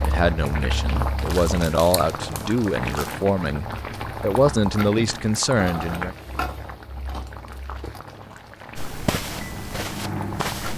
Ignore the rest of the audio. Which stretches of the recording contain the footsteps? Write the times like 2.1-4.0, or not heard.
8.8-10.7.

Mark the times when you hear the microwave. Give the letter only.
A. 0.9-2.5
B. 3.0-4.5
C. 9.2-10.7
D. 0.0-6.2
C.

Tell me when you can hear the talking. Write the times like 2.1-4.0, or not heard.
0.0-6.2.